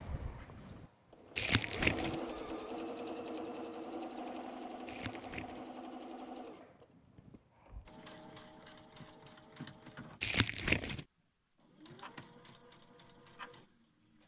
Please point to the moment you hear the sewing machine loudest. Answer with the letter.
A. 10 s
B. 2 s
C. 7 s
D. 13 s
B.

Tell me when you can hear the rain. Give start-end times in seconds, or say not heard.
not heard.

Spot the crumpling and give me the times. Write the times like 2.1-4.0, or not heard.
1.4-2.2, 4.8-5.7, 10.2-11.1.